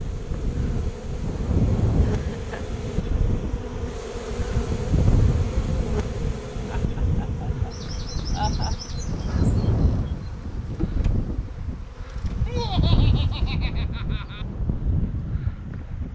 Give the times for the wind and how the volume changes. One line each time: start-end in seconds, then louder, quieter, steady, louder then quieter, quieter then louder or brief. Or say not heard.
0.0-16.1 steady.